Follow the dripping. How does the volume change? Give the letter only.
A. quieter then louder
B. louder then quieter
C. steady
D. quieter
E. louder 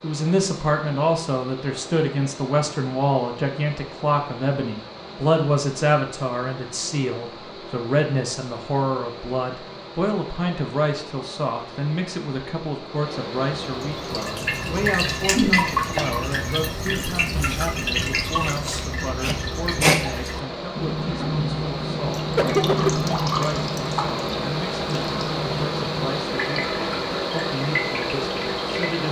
D.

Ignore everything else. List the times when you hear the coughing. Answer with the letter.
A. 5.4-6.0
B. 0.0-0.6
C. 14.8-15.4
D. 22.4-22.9
D.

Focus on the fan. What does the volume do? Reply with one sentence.
The loudness of the fan goes up.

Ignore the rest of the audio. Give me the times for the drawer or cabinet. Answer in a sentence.
The drawer or cabinet can't be heard in this clip.